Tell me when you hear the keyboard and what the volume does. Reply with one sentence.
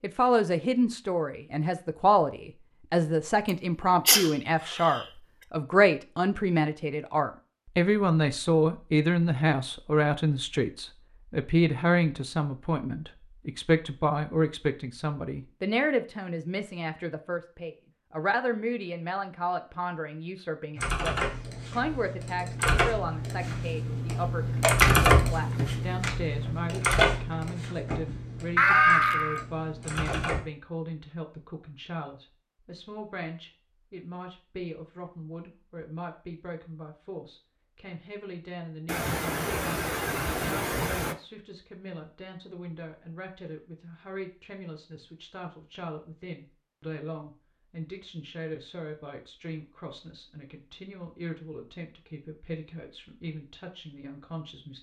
The keyboard can be heard from 20.8 to 30.4 s, getting louder then quieter.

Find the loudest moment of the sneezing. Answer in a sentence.
The loudest moment of the sneezing is at 29 seconds.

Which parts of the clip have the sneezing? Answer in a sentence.
You can hear the sneezing from 3.9 to 5.0 s, from 28.6 to 29.4 s and from 38.9 to 41.1 s.